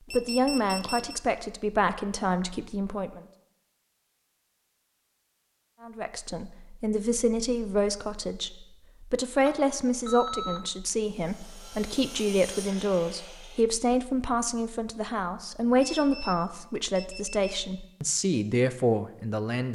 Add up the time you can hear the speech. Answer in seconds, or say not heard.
17 s.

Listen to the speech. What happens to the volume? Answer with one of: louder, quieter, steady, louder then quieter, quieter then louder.
steady.